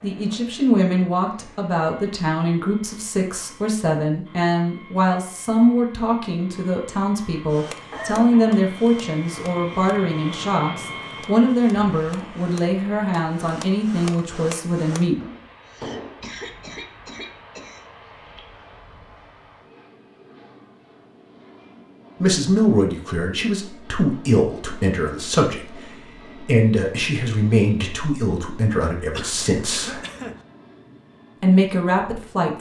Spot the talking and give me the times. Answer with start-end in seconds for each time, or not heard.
0.0-15.2, 22.2-30.0, 31.4-32.5.